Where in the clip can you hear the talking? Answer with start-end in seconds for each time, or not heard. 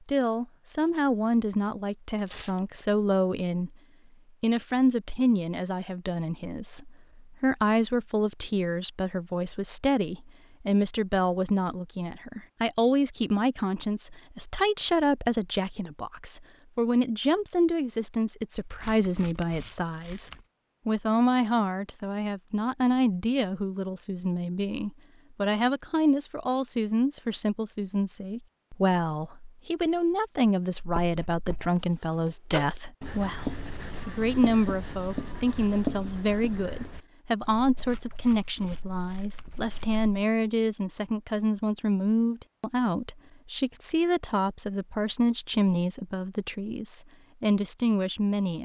0.1-3.7, 4.4-48.6.